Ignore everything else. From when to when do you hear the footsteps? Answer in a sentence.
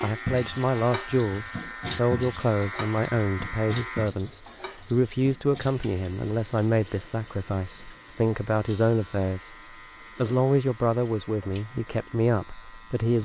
The footsteps can't be heard in this clip.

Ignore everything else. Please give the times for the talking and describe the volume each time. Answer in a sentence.
The talking can be heard from 0.0 to 9.6 s, at a steady volume; and briefly from 10.2 to 13.1 s.